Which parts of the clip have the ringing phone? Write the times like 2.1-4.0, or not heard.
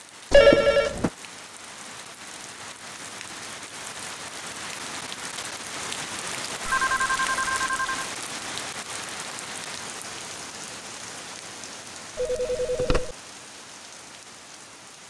0.3-1.1, 6.7-8.1, 12.2-13.2.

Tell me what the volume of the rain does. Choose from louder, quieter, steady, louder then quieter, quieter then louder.
louder then quieter.